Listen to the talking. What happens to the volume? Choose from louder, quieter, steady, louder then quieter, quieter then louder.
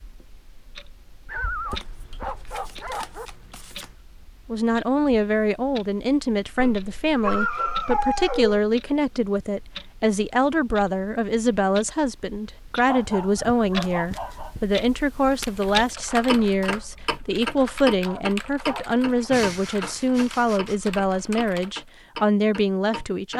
steady.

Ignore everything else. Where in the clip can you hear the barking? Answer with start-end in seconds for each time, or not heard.
1.2-3.3, 6.5-8.6, 12.8-14.6, 18.0-19.4.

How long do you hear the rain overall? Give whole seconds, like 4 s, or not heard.
not heard.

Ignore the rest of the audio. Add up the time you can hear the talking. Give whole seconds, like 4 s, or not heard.
19 s.